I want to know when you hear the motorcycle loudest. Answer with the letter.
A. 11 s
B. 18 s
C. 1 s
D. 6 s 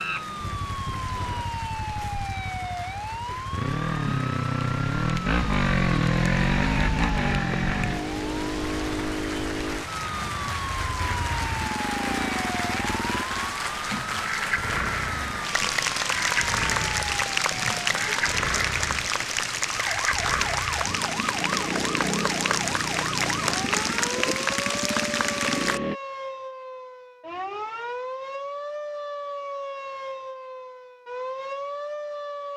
D.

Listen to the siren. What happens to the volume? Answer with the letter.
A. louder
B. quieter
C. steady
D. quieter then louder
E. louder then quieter
C.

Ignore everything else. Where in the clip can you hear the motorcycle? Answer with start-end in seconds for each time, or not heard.
0.0-26.0.